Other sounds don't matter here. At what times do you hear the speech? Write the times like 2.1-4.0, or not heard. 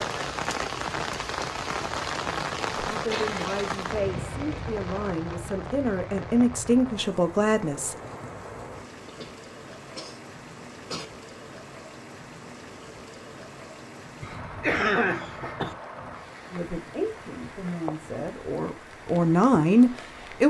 2.9-8.0, 16.5-20.4.